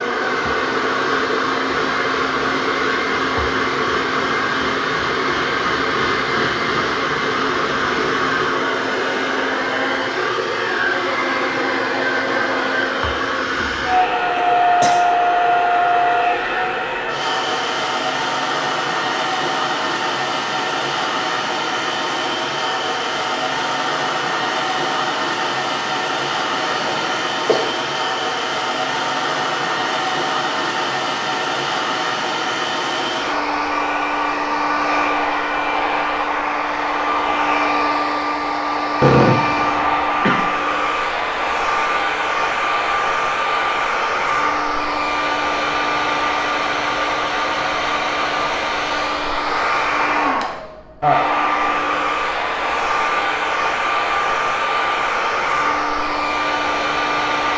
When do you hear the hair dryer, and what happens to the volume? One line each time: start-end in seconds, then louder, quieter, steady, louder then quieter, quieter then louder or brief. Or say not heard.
0.0-57.5 steady.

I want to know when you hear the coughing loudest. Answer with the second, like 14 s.
39 s.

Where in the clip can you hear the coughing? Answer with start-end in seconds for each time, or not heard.
14.3-15.1, 26.6-27.8, 39.0-40.5.